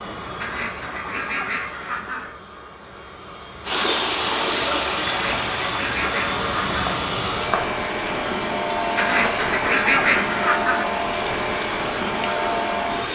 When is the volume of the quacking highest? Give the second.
10 s.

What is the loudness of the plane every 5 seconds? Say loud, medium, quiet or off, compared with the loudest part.
medium, loud, loud.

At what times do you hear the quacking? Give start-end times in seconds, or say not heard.
0.4-2.3, 5.0-6.8, 8.9-10.9.